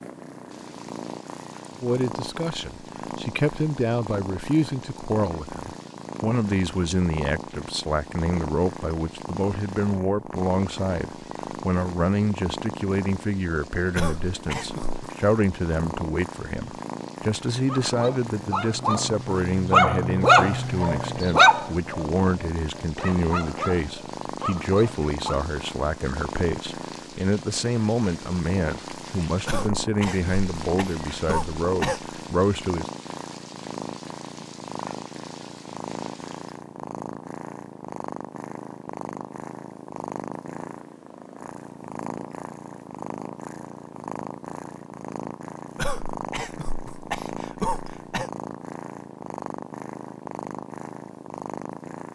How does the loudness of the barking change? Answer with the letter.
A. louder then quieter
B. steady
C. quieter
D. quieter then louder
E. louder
A.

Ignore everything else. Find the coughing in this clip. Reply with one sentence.
You can hear the coughing from 13.9 to 15.0 s, from 29.4 to 32.0 s and from 45.8 to 48.3 s.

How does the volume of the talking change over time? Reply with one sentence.
The loudness of the talking stays about the same.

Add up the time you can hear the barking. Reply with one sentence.
The barking can be heard for 8 seconds in total.